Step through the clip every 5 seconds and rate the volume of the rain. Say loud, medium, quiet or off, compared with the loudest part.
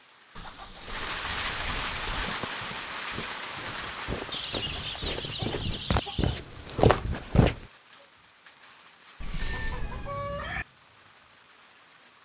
loud, quiet, quiet.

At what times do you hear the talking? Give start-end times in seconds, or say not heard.
not heard.